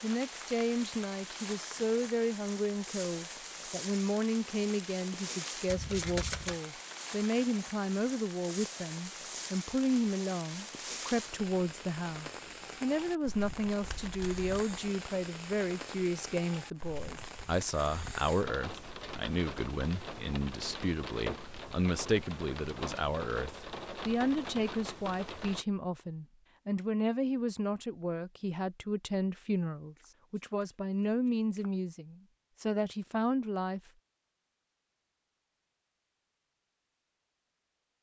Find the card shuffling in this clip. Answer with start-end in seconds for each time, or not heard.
5.7-6.6, 13.8-14.6, 29.9-31.7.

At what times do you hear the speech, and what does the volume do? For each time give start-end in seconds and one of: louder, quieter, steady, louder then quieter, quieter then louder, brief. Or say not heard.
0.0-33.8 steady.